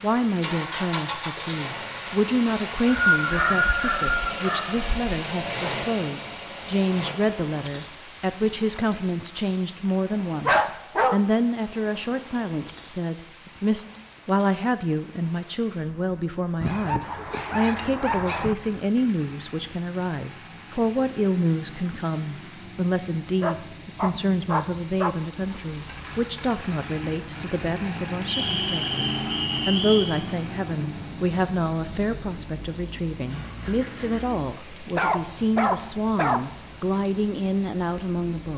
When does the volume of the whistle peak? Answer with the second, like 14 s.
3 s.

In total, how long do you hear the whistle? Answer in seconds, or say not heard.
4 s.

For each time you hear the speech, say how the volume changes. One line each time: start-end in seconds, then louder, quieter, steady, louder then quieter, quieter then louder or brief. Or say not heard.
0.0-38.5 steady.